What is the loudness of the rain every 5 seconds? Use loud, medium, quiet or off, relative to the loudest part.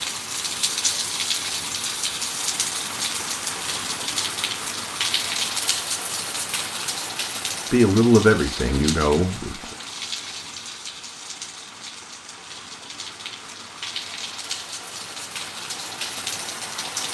loud, loud, medium, loud.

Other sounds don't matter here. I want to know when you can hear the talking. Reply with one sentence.
The talking can be heard from 7.7 to 9.7 s.